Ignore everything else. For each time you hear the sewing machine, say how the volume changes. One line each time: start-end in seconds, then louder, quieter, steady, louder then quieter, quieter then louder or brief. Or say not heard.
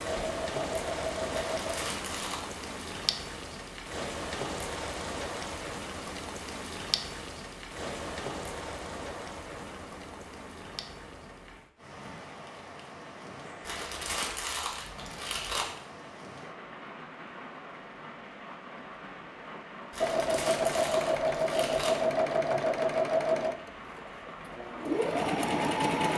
0.1-1.8 brief
20.0-26.1 quieter then louder.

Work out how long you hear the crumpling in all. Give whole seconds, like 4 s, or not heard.
5 s.